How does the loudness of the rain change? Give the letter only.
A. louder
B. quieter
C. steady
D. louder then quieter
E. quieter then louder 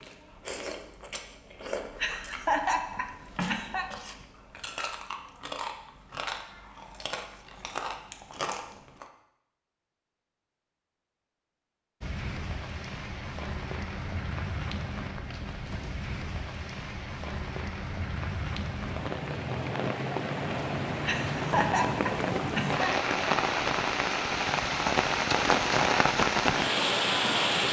A.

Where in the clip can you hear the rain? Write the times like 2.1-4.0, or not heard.
12.0-27.6.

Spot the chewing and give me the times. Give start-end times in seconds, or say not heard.
0.0-9.1.